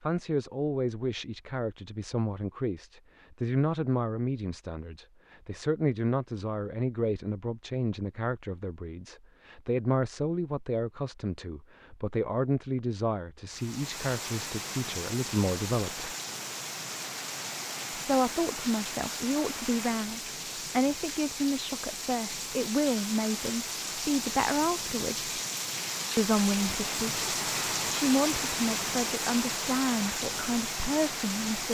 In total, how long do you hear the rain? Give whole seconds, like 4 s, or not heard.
18 s.